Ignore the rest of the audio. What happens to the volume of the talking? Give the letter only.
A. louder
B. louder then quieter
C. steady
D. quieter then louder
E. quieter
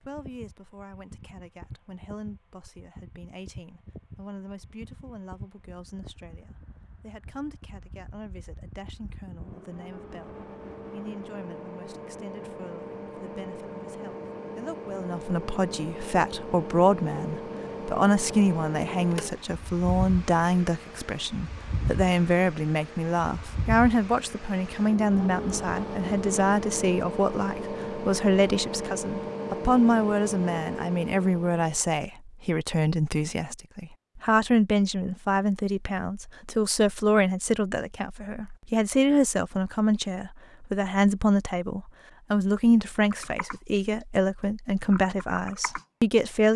A.